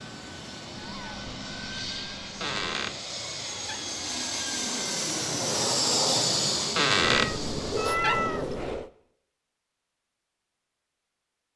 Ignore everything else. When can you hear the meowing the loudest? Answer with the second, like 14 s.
8 s.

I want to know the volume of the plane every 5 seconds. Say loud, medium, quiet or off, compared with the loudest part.
medium, loud, off.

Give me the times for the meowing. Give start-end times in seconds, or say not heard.
0.8-2.8, 7.0-8.9.